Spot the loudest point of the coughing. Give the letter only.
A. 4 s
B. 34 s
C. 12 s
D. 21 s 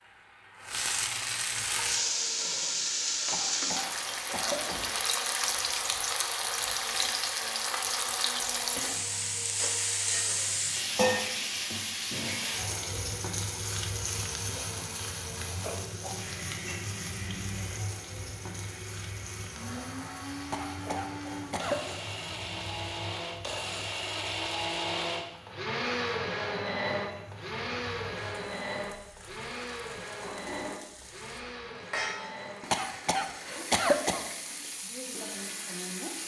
B.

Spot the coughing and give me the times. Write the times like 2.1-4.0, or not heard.
3.3-4.8, 20.5-21.9, 32.7-34.2.